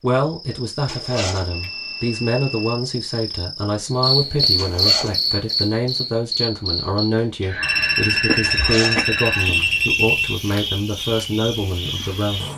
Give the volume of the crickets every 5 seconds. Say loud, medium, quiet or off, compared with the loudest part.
loud, loud, medium.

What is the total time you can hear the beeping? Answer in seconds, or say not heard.
4 s.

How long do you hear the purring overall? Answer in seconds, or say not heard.
not heard.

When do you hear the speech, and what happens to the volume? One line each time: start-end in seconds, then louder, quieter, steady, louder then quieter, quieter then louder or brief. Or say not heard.
0.0-12.4 steady.